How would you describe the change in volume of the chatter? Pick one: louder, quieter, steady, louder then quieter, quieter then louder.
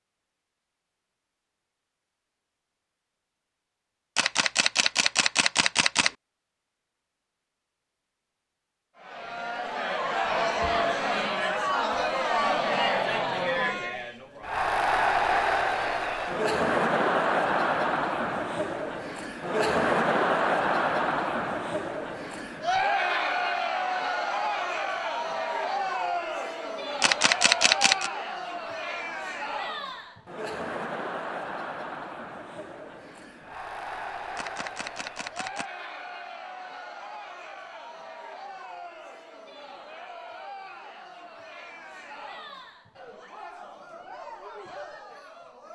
quieter.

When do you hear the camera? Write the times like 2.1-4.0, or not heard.
4.2-6.2, 27.0-28.1, 34.4-35.6.